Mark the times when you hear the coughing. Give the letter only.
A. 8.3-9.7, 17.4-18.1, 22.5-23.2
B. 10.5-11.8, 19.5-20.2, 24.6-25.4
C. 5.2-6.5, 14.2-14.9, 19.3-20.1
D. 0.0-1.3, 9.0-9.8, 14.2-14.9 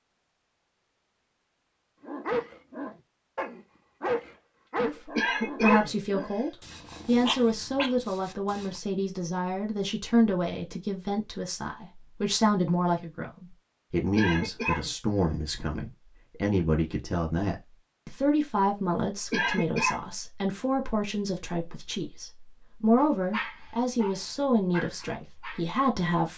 C.